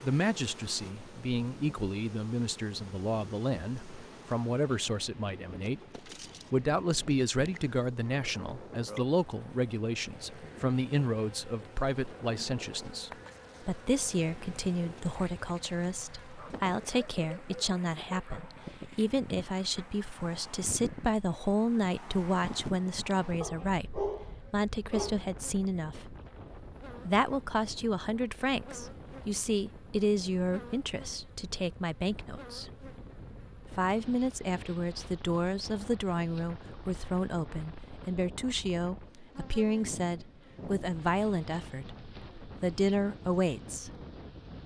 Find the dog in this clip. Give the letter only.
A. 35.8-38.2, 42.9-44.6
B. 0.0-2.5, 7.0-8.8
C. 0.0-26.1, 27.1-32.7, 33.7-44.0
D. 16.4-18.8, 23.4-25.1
D.